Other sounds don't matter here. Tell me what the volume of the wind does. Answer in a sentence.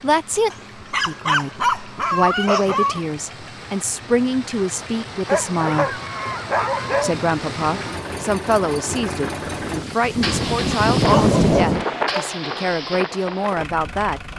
The volume of the wind goes up, then down.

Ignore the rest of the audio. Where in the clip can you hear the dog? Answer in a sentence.
You can hear the dog from 0.5 to 3.0 s, from 5.2 to 7.2 s and from 10.9 to 12.3 s.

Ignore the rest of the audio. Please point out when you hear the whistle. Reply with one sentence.
You can't hear the whistle here.